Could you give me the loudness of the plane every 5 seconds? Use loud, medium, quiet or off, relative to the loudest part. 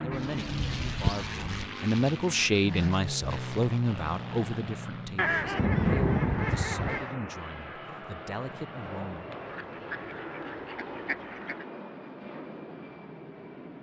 loud, loud, medium.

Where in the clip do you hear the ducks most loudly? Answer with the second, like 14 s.
6 s.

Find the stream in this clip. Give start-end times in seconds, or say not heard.
not heard.